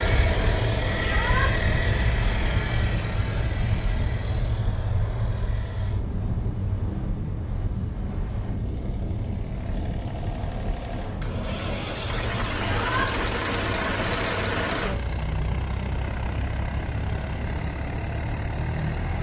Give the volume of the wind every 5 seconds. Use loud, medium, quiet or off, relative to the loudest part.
loud, loud, medium, medium.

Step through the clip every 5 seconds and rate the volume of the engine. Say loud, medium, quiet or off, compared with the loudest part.
loud, quiet, loud, loud.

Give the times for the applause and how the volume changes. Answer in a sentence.
You can't hear the applause here.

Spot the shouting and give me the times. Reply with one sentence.
The shouting can be heard from 1.0 to 1.5 s and from 12.6 to 13.1 s.